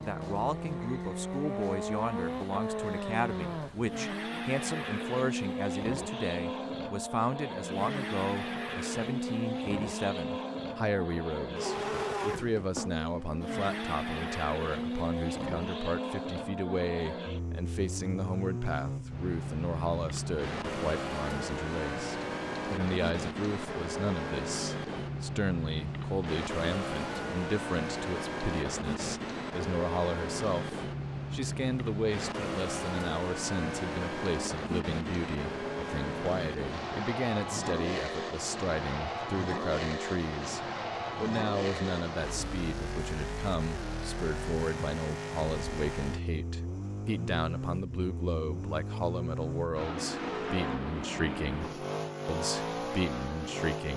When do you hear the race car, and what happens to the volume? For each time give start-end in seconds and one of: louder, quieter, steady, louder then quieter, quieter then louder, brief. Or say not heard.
0.0-53.9 steady.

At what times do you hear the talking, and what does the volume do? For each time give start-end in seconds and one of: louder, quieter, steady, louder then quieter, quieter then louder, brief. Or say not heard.
0.0-53.9 steady.